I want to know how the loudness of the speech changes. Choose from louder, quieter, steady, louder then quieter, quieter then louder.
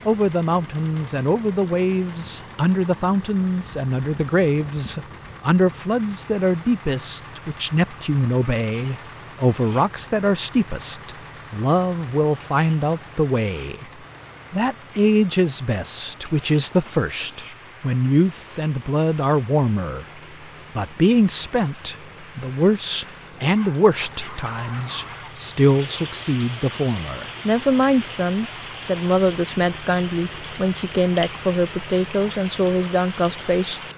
steady.